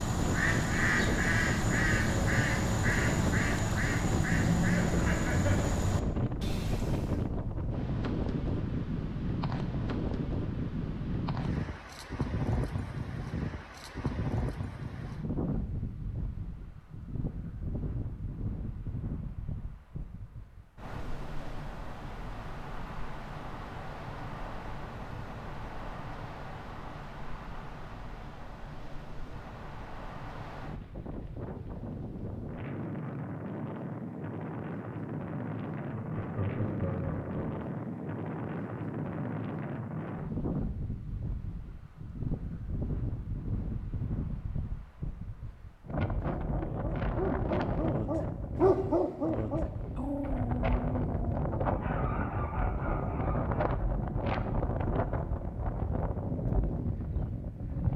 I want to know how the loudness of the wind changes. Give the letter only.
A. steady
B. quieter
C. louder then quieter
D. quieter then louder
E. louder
D.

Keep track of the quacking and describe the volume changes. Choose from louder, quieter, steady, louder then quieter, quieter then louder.
quieter.